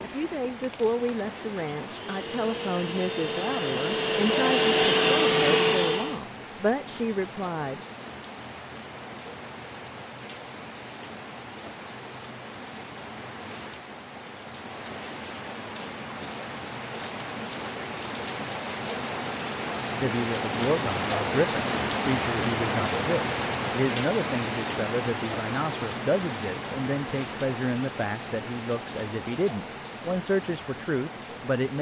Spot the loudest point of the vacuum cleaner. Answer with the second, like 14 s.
5 s.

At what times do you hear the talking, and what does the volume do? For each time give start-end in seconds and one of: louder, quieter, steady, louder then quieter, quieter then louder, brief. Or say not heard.
0.0-7.8 steady
20.0-31.7 steady.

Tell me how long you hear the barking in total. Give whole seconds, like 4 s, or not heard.
not heard.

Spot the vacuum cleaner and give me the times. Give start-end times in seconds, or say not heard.
0.0-6.2.